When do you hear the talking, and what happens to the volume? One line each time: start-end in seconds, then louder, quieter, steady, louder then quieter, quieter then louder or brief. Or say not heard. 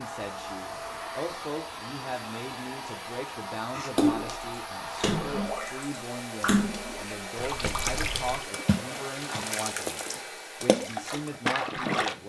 0.0-12.2 steady.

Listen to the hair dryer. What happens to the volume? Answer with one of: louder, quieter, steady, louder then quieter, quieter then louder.
steady.